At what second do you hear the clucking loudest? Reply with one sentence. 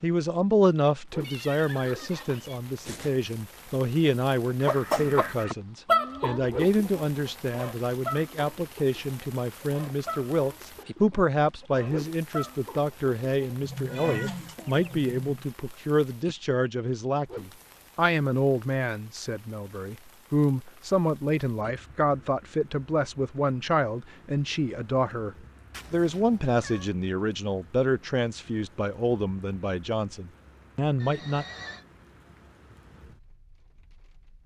The volume of the clucking peaks at 6 seconds.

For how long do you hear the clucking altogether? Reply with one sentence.
You can hear the clucking for 10 seconds altogether.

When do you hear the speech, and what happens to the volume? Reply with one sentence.
You can hear the speech from 0.0 to 31.4 s, at a steady volume.